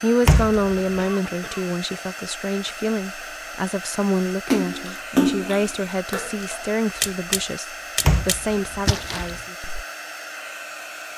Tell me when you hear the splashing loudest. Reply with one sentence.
The volume of the splashing peaks at 5 seconds.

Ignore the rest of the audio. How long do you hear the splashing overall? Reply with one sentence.
The splashing can be heard for 5 seconds in total.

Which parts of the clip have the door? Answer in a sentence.
You can hear the door from 0.2 to 1.0 s and from 8.1 to 9.4 s.